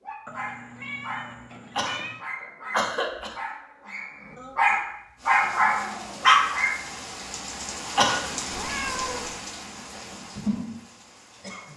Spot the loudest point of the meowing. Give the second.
9 s.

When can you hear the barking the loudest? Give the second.
6 s.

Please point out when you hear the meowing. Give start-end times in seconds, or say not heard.
0.2-2.2, 8.5-9.3.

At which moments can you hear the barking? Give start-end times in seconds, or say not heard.
0.0-6.8.